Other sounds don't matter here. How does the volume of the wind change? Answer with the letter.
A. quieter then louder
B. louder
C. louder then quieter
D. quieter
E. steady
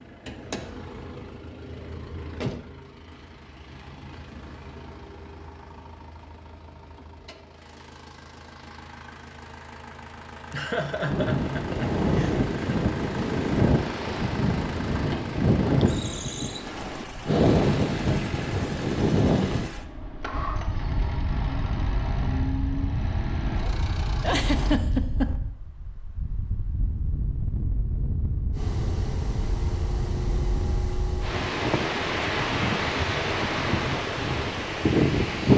A.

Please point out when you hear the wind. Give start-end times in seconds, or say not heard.
10.9-35.5.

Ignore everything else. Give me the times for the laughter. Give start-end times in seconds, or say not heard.
10.5-12.8, 24.2-25.4.